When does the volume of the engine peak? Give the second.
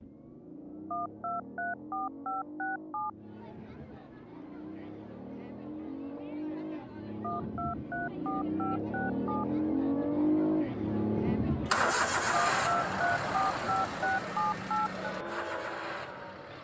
10 s.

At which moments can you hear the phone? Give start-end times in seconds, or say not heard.
0.9-3.1, 7.2-9.4, 12.3-15.1.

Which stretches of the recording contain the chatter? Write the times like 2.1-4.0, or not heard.
3.1-16.5.